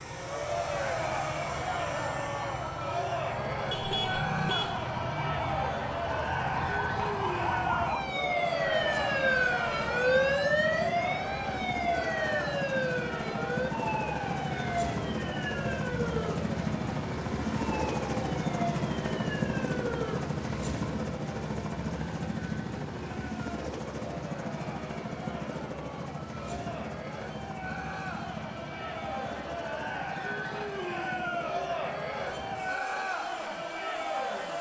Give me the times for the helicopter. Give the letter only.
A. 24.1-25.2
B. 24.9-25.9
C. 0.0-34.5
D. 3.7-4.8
C.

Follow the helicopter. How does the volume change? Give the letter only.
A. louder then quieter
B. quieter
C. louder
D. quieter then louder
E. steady
A.